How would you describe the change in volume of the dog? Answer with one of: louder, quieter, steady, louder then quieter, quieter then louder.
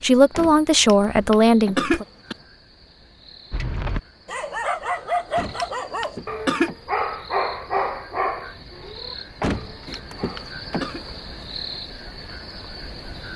quieter.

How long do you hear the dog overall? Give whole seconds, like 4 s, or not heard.
7 s.